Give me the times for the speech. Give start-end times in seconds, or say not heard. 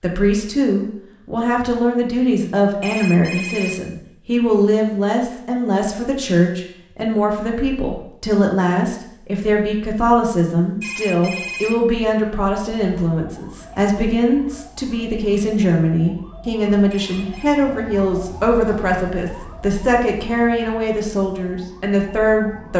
0.0-22.7.